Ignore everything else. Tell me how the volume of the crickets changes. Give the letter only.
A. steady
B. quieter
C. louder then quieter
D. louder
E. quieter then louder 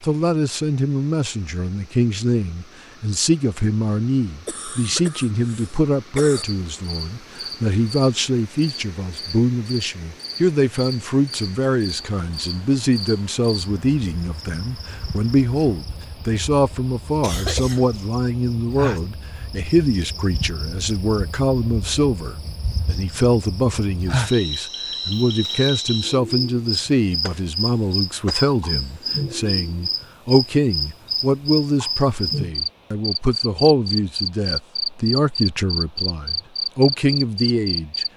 D.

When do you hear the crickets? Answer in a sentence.
You can hear the crickets from 6.3 to 38.1 s.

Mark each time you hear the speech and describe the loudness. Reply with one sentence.
You can hear the speech from 0.0 to 38.0 s, at a steady volume.